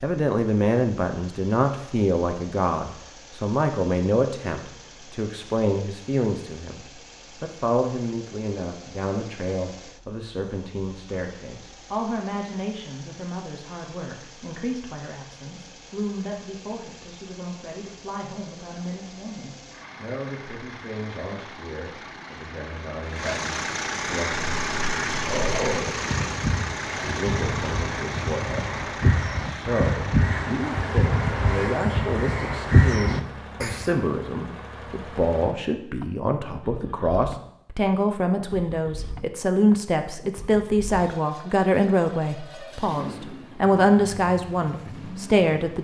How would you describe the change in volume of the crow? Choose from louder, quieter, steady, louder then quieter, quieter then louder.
louder.